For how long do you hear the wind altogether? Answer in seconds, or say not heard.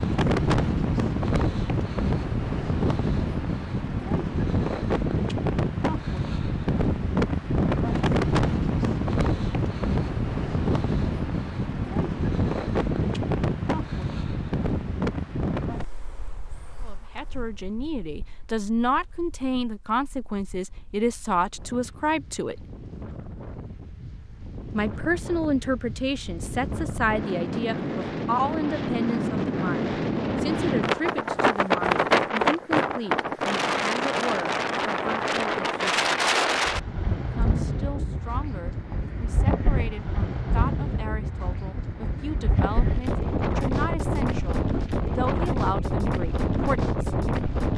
48 s.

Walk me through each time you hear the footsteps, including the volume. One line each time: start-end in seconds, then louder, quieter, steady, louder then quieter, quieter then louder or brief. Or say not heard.
not heard.